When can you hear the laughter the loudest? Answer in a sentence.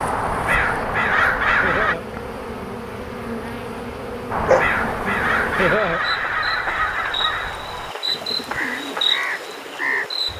The volume of the laughter peaks at 6 seconds.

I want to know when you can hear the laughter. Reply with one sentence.
You can hear the laughter from 1.6 to 2.0 s and from 5.5 to 6.0 s.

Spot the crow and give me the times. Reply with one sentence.
You can hear the crow from 0.0 to 1.9 s and from 4.3 to 10.3 s.